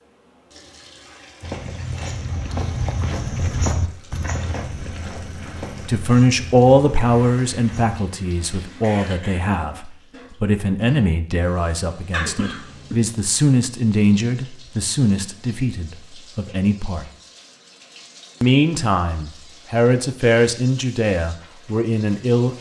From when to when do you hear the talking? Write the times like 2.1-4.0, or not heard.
5.8-17.1, 18.4-22.5.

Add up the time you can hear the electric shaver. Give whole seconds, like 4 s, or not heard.
not heard.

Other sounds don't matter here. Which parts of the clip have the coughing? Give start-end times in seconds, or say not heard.
8.8-9.5, 12.1-12.9.